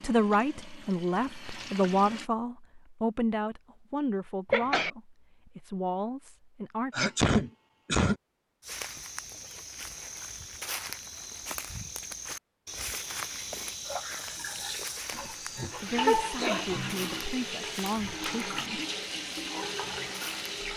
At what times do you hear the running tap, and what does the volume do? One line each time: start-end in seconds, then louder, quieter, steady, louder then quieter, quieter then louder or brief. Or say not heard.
0.0-2.3 brief
13.8-20.7 louder.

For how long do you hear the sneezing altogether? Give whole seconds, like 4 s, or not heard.
3 s.